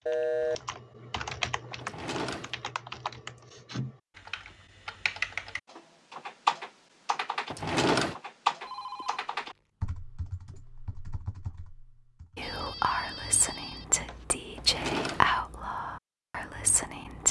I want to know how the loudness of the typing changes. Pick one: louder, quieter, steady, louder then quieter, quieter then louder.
louder then quieter.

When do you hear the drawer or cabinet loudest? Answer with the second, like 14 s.
8 s.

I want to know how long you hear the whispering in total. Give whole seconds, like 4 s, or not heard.
5 s.